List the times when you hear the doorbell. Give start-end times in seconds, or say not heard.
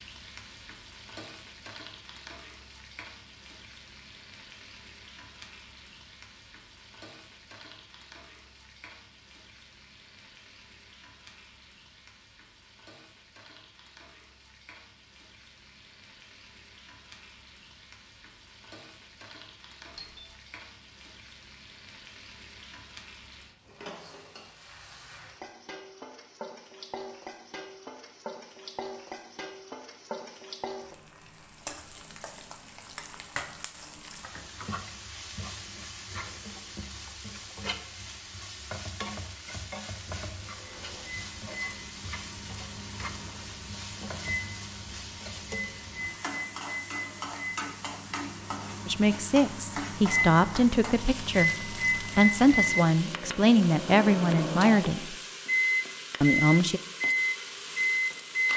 19.9-20.4.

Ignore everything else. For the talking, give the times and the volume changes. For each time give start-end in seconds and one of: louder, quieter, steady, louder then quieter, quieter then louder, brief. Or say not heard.
48.9-55.1 steady
56.2-56.8 brief.